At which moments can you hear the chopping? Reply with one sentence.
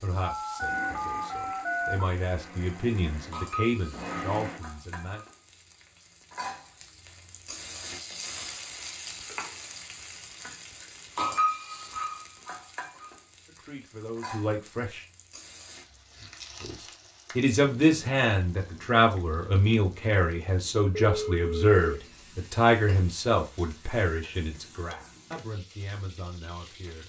You can't hear the chopping here.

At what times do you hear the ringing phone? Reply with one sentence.
The ringing phone can be heard from 0.2 to 2.1 s and from 20.9 to 22.2 s.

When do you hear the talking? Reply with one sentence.
You can hear the talking from 0.0 to 5.2 s, from 13.4 to 15.1 s and from 16.6 to 27.0 s.